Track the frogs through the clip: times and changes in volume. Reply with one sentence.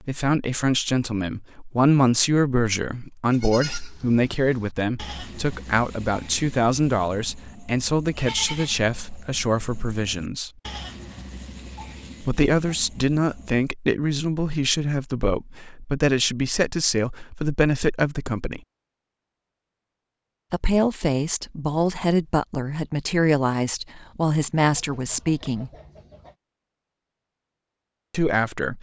You can't hear the frogs here.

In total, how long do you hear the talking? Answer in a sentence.
You can hear the talking for 23 seconds altogether.